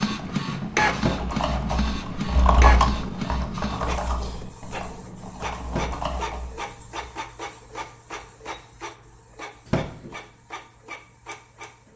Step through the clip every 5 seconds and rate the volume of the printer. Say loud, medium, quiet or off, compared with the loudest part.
loud, medium, quiet.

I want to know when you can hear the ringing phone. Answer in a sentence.
You can hear the ringing phone from 0.9 to 1.4 s, from 5.7 to 6.2 s and from 9.7 to 10.2 s.